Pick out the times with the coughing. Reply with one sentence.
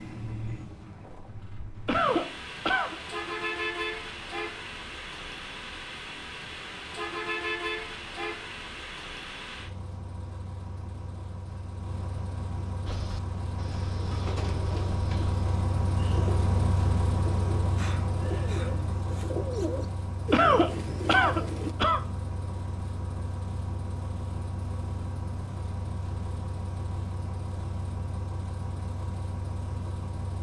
The coughing can be heard from 1.9 to 3.0 s and from 20.3 to 22.0 s.